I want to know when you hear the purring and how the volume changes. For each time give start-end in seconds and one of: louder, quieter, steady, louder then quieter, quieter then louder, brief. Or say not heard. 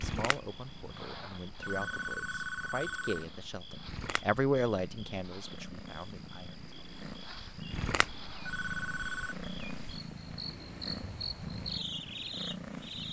0.0-13.0 louder.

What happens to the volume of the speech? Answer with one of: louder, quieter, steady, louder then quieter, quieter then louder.
louder then quieter.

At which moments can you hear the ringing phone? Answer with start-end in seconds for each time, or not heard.
1.6-3.2, 8.4-9.3.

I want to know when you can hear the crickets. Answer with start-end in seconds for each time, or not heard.
0.0-13.0.